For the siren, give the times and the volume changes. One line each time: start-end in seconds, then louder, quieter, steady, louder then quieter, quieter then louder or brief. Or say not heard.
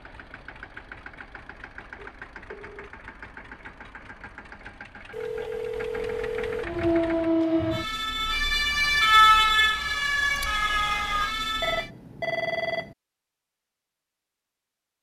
6.6-11.9 louder then quieter.